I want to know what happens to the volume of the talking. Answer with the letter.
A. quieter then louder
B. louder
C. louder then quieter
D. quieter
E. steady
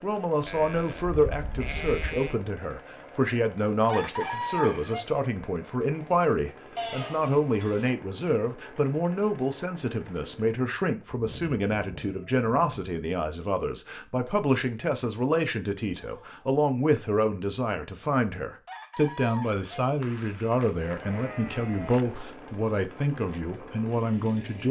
E.